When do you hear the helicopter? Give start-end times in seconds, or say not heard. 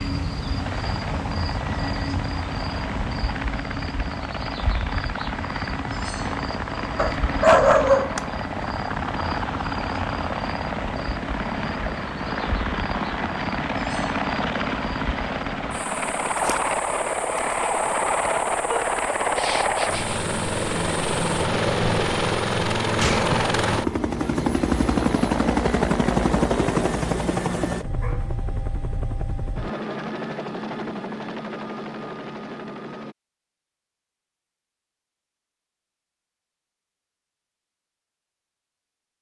0.0-33.1.